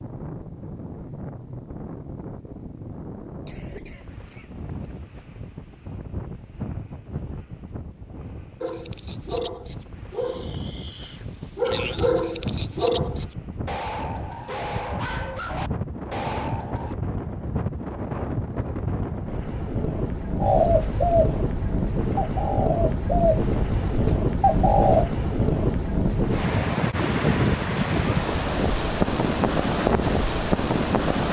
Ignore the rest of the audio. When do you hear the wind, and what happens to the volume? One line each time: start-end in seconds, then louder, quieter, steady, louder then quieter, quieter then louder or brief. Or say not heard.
0.0-31.2 louder.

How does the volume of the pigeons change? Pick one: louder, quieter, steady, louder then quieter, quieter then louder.
quieter then louder.